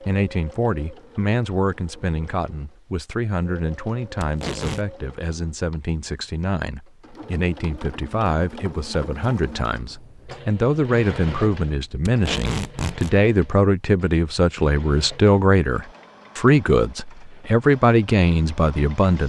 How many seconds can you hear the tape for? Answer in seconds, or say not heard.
2 s.